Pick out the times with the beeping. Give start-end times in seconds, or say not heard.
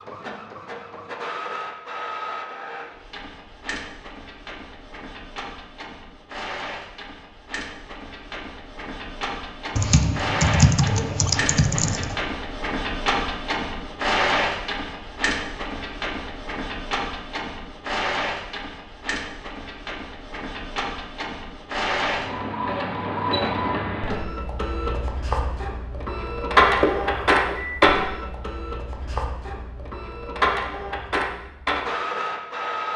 26.6-27.9.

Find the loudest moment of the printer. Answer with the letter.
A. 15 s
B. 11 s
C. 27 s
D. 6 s
C.